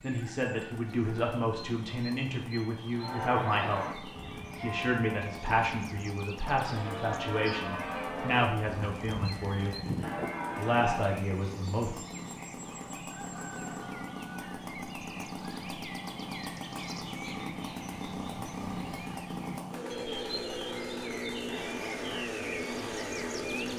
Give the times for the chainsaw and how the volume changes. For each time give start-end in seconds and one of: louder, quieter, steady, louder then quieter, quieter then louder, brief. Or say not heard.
0.0-23.7 louder.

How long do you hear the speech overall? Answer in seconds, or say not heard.
11 s.